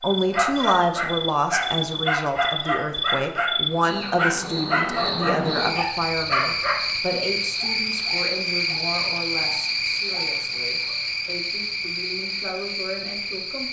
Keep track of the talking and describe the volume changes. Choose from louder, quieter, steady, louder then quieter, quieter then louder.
quieter.